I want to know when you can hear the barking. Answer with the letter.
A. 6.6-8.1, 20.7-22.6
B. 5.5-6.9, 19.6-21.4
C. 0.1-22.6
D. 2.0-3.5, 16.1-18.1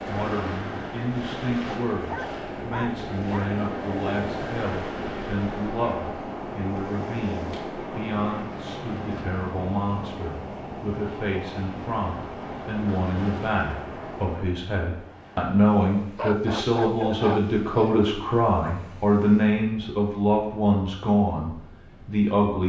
D.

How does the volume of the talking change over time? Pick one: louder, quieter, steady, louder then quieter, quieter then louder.
louder.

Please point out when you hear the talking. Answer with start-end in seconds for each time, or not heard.
0.1-22.6.